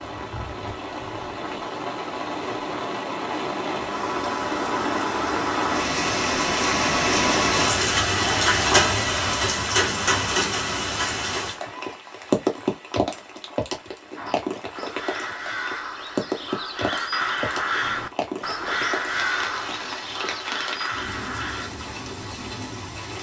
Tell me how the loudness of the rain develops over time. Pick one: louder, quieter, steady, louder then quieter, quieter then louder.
louder then quieter.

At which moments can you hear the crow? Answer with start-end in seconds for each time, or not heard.
14.2-21.7.